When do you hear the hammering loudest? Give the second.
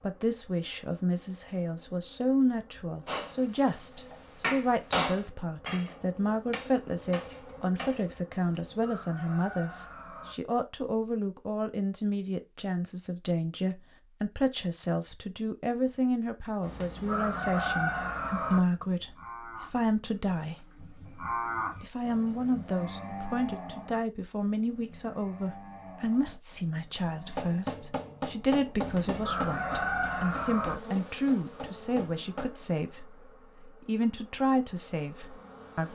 5 s.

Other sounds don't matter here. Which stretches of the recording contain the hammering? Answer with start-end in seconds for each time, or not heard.
3.0-8.1, 27.4-32.5.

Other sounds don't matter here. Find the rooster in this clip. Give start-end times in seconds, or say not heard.
8.3-10.3, 16.6-18.6, 28.8-30.8.